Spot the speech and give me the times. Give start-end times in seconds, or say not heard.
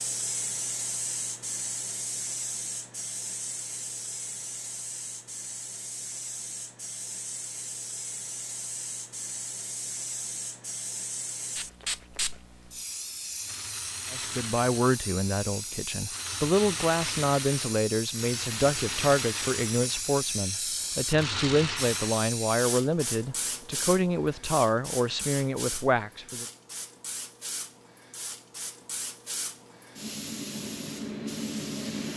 14.1-26.4.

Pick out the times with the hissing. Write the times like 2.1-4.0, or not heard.
0.0-32.1.